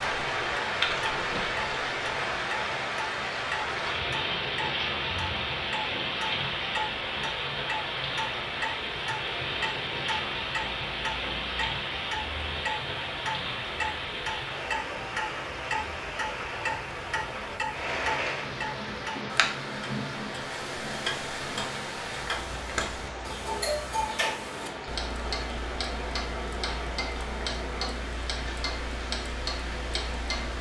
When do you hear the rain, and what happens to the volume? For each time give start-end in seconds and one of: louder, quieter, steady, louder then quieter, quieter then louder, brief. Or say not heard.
0.0-30.5 quieter.